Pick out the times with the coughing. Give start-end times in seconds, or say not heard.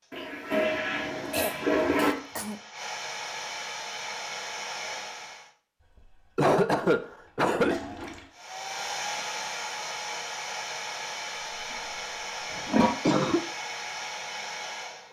1.3-2.5, 6.3-7.8, 12.5-13.4.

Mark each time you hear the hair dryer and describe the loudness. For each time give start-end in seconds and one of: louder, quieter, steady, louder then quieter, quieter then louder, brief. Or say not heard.
0.0-5.5 louder
8.3-15.0 steady.